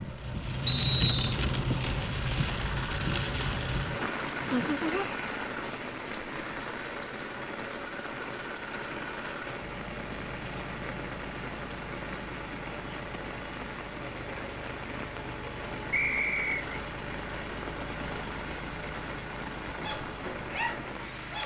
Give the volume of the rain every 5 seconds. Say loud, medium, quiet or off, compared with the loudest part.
loud, medium, medium, medium, medium.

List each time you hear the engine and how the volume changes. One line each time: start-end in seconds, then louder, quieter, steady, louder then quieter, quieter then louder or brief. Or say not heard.
0.0-21.4 steady.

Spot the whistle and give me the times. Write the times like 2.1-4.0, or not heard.
0.7-1.4, 15.9-16.6.